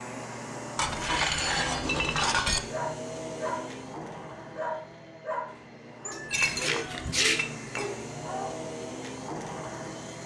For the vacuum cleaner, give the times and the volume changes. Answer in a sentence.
The vacuum cleaner can be heard from 0.0 to 10.2 s, getting quieter then louder.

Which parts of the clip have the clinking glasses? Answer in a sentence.
You can hear the clinking glasses from 0.8 to 2.6 s and from 6.1 to 8.0 s.